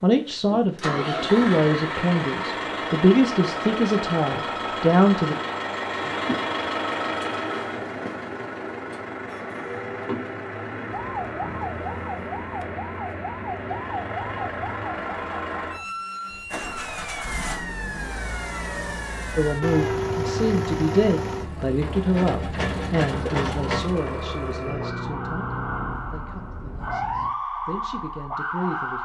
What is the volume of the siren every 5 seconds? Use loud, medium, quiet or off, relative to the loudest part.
off, off, loud, medium, medium, loud.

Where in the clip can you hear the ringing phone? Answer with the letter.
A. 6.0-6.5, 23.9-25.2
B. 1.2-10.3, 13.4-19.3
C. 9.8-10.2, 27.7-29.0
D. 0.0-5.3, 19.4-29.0
A.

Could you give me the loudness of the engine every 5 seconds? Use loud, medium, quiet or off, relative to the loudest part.
loud, loud, medium, loud, loud, medium.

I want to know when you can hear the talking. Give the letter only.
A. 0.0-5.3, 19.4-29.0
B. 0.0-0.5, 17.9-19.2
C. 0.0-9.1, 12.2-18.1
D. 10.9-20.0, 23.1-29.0
A.